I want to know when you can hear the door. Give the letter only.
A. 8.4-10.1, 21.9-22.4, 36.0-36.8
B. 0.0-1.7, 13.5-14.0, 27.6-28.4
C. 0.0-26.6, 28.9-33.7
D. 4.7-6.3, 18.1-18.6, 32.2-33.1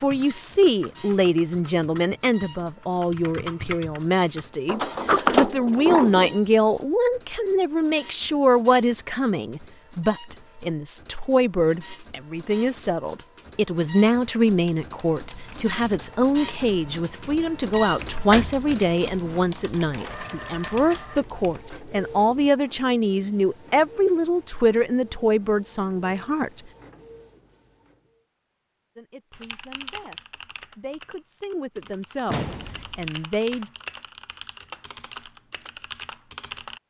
D.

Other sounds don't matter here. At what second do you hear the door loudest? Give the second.
5 s.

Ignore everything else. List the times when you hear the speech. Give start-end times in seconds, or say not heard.
0.0-26.6, 28.9-33.7.